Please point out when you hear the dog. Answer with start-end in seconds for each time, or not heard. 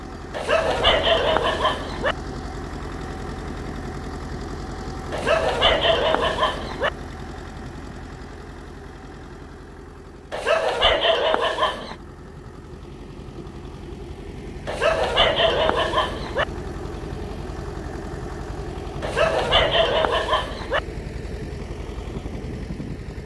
0.3-2.1, 5.1-6.9, 10.3-11.9, 14.7-16.4, 19.0-20.8.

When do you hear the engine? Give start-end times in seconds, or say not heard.
0.0-23.2.